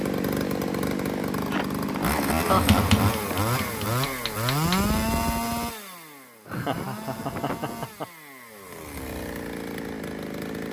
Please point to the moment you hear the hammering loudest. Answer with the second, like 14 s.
3 s.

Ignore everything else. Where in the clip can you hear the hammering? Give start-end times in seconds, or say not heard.
2.5-4.8.